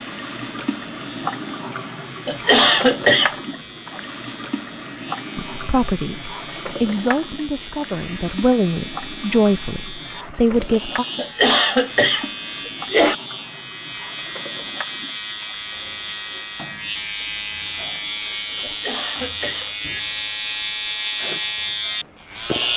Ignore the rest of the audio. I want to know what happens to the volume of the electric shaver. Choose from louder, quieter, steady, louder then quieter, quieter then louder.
louder.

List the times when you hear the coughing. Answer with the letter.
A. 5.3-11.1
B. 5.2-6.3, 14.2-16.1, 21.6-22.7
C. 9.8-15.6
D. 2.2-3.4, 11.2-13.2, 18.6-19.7
D.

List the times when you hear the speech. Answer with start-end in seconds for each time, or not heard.
5.3-11.1.